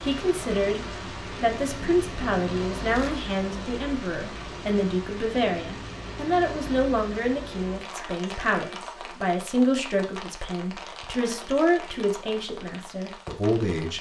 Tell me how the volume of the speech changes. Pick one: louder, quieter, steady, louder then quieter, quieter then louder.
steady.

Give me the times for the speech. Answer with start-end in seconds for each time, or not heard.
0.0-13.9.